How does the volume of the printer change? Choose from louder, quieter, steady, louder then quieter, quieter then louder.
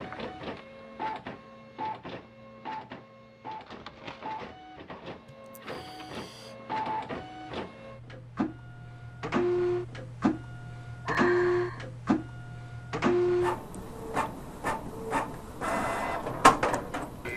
louder.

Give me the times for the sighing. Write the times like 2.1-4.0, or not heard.
5.2-6.5, 11.1-11.8.